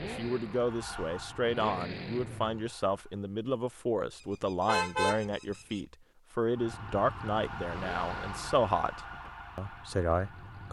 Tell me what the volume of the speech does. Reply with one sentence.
The volume of the speech stays about the same.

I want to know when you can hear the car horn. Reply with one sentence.
The car horn can be heard from 4.5 to 5.8 s.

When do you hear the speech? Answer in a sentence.
You can hear the speech from 0.0 to 10.6 s.